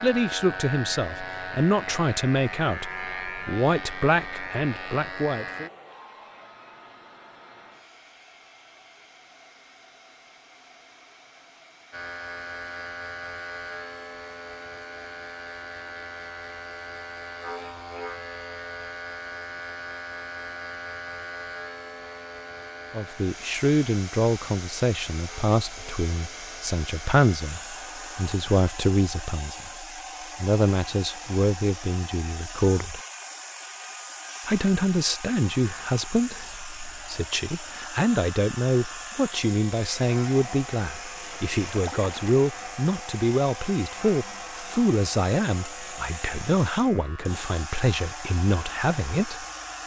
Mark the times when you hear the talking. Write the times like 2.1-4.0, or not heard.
0.0-5.7, 22.9-33.0, 34.5-49.5.